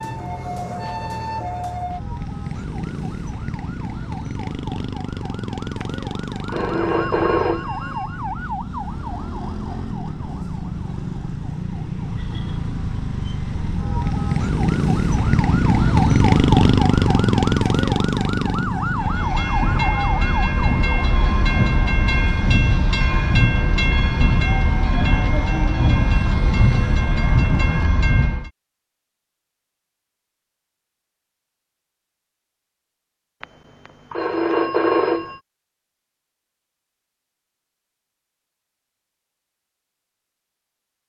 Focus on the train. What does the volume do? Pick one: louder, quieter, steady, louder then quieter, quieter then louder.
steady.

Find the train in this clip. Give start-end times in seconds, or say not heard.
18.9-28.5.